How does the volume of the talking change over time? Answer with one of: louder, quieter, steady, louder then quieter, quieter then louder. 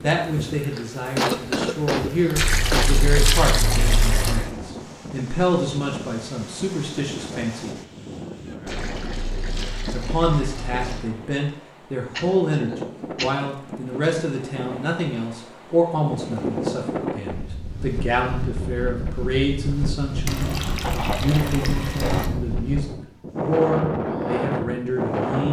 steady.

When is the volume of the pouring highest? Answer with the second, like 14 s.
3 s.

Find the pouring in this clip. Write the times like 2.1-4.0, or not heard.
2.4-4.5, 8.7-11.1, 20.2-22.3.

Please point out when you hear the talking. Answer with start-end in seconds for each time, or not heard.
0.0-7.7, 9.9-25.4.